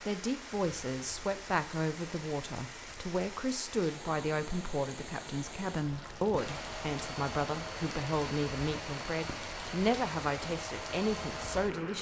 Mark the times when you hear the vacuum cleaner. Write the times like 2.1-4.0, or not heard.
6.3-11.9.